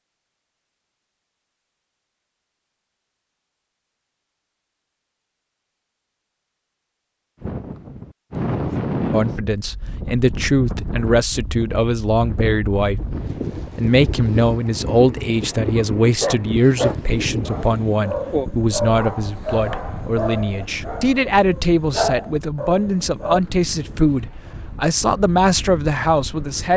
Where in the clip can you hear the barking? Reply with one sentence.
The barking can be heard from 15.4 to 23.4 s.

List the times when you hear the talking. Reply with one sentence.
You can hear the talking from 9.1 to 13.0 s and from 13.8 to 26.7 s.